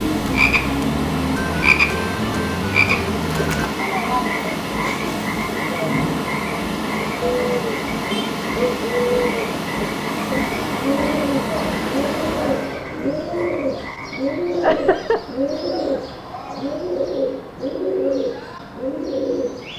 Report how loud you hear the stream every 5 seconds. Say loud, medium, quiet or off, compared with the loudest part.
loud, loud, loud, off.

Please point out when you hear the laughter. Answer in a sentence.
The laughter can be heard from 14.5 to 15.2 s.